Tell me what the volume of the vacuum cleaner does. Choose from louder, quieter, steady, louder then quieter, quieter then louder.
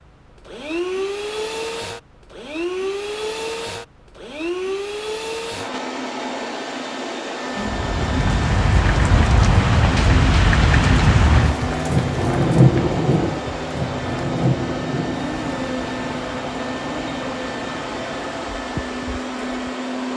steady.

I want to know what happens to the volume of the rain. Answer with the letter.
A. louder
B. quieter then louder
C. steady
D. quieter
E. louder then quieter
D.